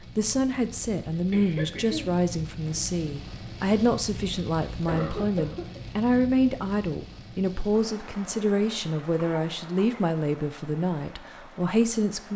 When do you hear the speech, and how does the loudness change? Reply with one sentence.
The speech can be heard from 0.0 to 12.3 s, at a steady volume.